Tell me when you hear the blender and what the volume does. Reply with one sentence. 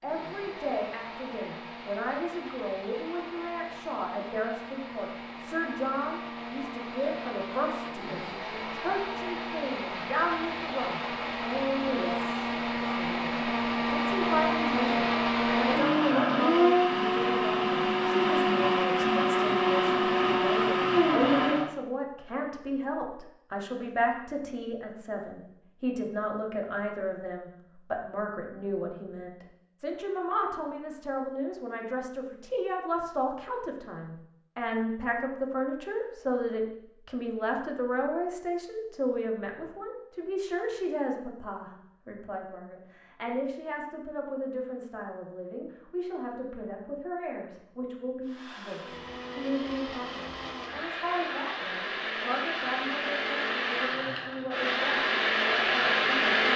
You can hear the blender from 0.0 to 21.7 s, getting louder; and from 48.2 to 56.5 s, getting louder.